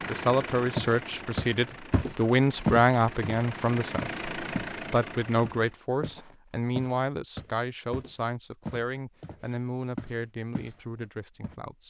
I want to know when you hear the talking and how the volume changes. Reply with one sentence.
The talking can be heard from 0.1 to 11.8 s, getting quieter.